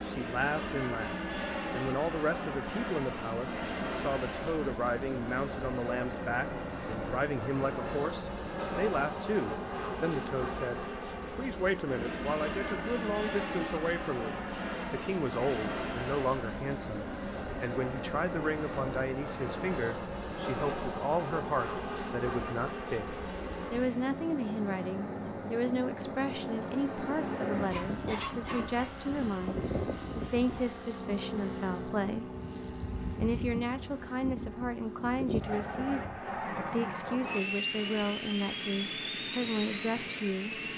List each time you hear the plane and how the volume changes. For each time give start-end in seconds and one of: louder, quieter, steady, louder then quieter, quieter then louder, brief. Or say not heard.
0.0-40.7 steady.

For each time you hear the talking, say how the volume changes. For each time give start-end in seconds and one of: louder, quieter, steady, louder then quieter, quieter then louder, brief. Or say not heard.
0.0-32.3 steady
33.0-40.6 steady.